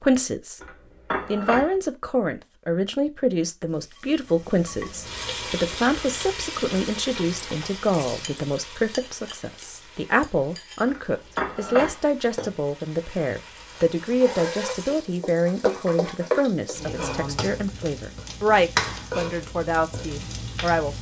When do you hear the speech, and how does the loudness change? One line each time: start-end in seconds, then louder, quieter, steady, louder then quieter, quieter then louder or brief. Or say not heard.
0.0-0.6 brief
1.2-20.9 steady.